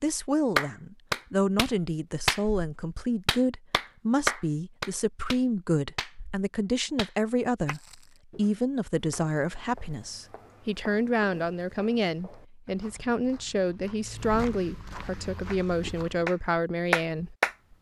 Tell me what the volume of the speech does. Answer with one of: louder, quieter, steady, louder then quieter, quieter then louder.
steady.